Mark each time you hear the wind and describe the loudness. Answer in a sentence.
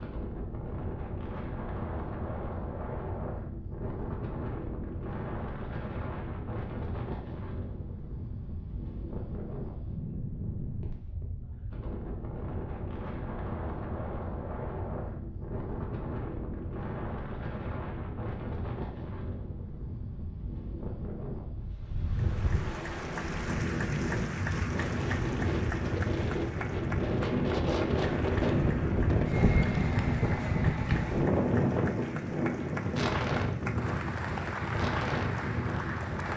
You can hear the wind from 0.0 to 36.3 s, getting louder.